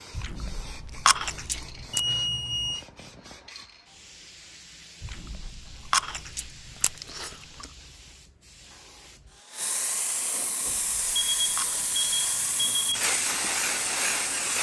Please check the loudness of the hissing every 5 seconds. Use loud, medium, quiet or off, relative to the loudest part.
quiet, quiet, loud.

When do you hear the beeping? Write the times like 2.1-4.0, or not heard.
1.9-2.9, 11.2-13.0.